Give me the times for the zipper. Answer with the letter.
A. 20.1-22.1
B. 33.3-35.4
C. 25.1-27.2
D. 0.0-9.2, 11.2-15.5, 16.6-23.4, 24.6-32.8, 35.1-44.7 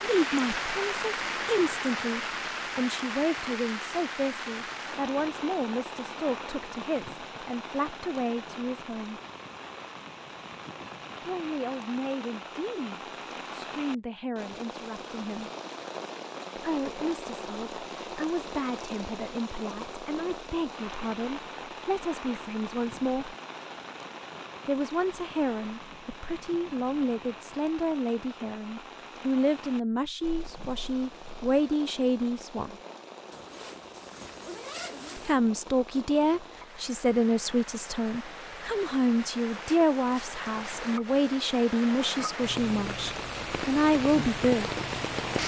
B.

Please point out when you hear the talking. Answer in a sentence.
The talking can be heard from 0.0 to 9.2 s, from 11.2 to 15.5 s, from 16.6 to 23.4 s, from 24.6 to 32.8 s and from 35.1 to 44.7 s.